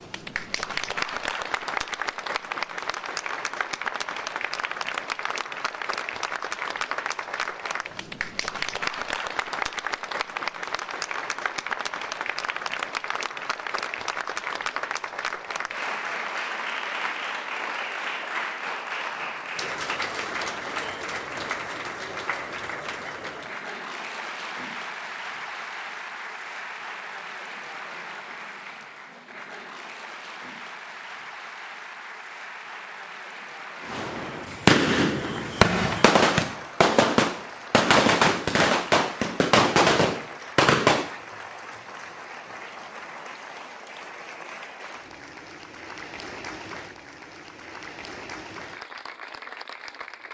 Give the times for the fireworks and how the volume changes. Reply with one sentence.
You can hear the fireworks from 33.9 to 41.1 s, at a steady volume.